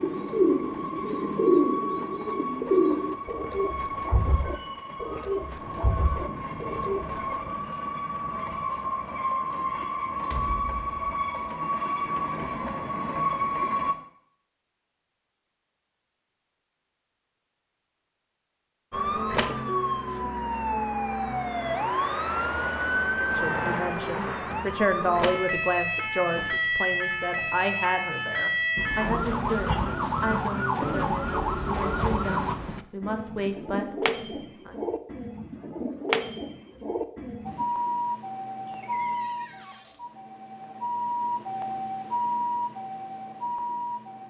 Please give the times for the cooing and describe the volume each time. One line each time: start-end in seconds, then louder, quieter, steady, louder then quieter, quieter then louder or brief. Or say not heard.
0.0-7.4 quieter
28.8-37.6 louder.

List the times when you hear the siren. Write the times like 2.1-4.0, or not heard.
18.9-32.5, 37.5-44.2.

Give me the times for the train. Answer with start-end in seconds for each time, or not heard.
0.0-13.9.